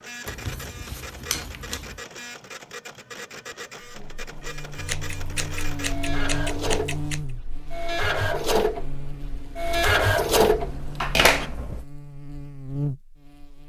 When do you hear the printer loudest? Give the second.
10 s.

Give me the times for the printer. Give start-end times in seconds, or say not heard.
0.0-11.5.